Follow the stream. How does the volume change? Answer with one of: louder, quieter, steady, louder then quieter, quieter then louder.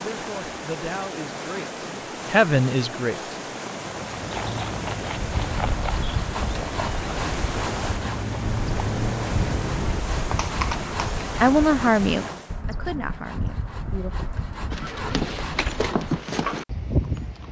steady.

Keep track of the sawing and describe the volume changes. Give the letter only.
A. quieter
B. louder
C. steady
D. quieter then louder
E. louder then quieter
C.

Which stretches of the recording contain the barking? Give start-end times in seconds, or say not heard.
not heard.